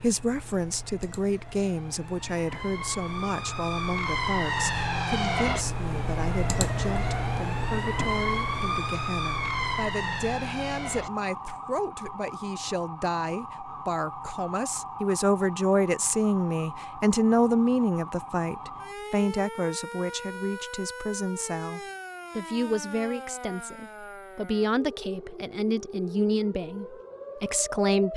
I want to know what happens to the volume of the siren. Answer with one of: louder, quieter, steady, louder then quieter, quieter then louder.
quieter.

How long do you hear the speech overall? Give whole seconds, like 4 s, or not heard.
28 s.